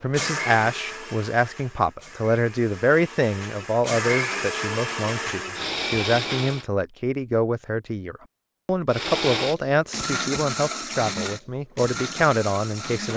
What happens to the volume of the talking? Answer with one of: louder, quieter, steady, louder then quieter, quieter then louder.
steady.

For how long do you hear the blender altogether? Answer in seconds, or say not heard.
11 s.